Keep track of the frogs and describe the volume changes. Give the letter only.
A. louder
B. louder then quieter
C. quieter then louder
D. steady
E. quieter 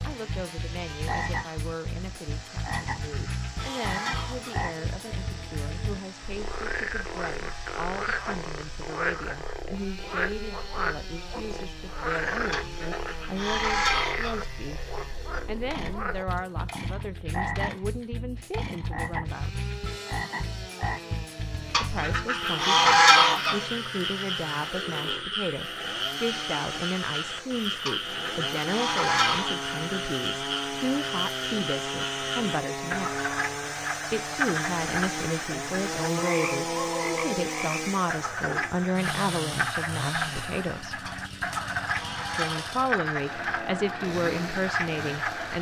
D.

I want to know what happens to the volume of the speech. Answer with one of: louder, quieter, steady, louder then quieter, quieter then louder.
louder.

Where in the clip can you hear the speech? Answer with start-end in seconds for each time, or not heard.
0.1-19.6, 21.8-33.2, 34.1-41.0, 42.4-45.5.